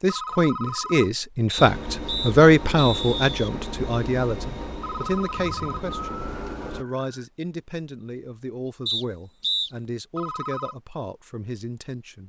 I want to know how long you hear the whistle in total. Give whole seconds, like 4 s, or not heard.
3 s.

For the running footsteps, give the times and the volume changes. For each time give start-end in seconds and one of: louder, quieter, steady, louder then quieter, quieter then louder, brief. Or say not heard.
not heard.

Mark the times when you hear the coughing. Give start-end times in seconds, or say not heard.
not heard.